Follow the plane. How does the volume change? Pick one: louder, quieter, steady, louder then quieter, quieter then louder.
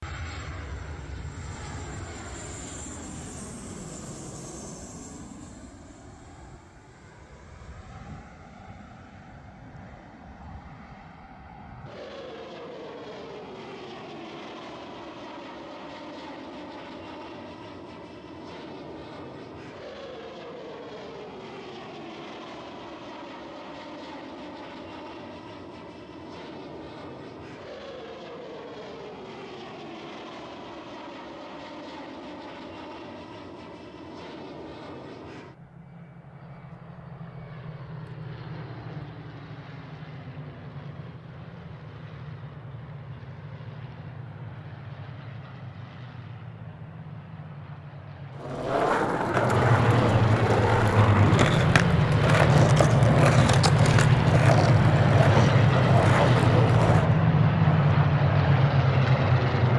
louder.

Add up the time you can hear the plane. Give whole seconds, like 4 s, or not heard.
60 s.